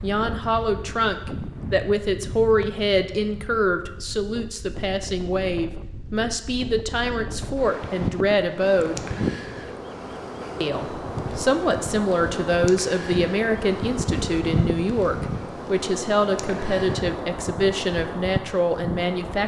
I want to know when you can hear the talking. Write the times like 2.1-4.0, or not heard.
0.0-9.0, 10.6-19.4.